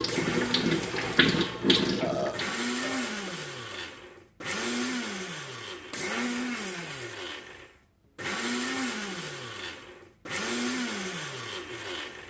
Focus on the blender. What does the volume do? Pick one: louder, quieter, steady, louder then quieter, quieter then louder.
steady.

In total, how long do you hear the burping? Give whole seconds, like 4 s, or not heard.
2 s.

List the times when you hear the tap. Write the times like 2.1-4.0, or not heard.
0.0-2.5.